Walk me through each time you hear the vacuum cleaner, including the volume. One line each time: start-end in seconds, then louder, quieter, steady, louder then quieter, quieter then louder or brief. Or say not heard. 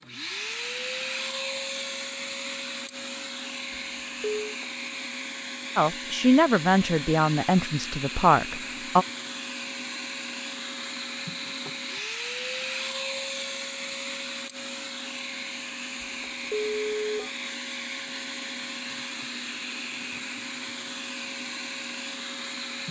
0.0-22.8 steady.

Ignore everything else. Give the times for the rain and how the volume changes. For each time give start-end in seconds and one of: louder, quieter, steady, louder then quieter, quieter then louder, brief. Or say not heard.
not heard.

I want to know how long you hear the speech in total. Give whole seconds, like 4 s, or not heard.
3 s.